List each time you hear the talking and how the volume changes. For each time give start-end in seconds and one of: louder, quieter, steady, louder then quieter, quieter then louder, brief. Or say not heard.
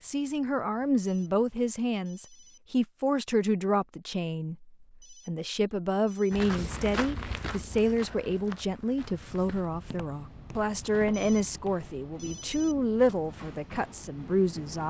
0.0-14.8 steady.